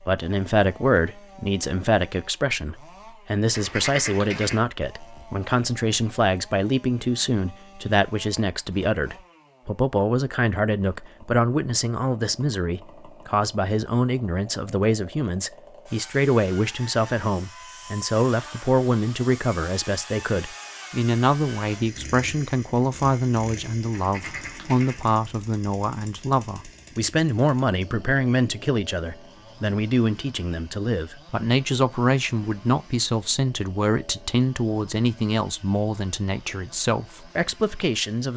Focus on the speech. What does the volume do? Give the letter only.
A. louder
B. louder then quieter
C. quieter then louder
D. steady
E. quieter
D.